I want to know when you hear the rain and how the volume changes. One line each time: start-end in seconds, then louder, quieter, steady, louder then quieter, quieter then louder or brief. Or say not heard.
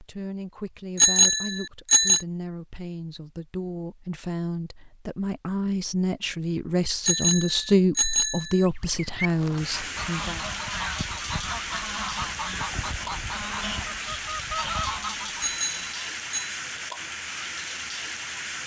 9.2-18.6 steady.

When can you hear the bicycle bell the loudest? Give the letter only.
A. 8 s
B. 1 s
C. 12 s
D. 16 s
B.